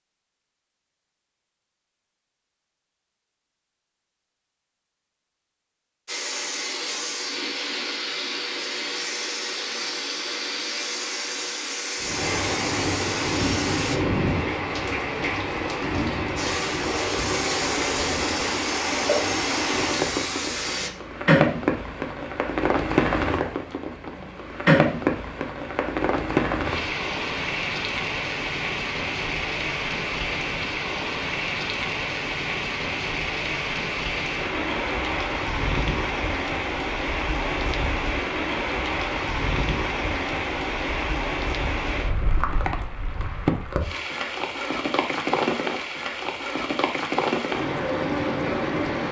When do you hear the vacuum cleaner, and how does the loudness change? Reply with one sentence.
You can hear the vacuum cleaner from 6.0 to 14.0 s, at a steady volume; and from 16.4 to 20.9 s, at a steady volume.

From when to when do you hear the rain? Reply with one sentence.
You can hear the rain from 12.0 to 49.0 s.